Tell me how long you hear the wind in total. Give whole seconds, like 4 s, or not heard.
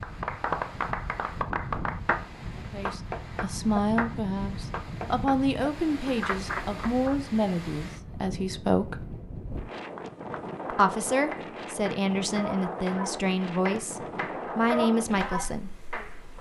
16 s.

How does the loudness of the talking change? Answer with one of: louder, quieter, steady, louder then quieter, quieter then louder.
steady.